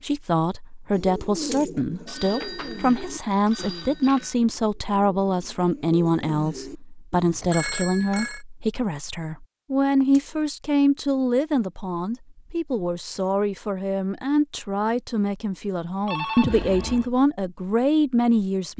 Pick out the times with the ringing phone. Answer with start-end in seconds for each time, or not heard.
2.0-4.3, 7.4-8.4, 16.1-17.1.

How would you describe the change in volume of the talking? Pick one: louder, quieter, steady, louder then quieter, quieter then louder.
steady.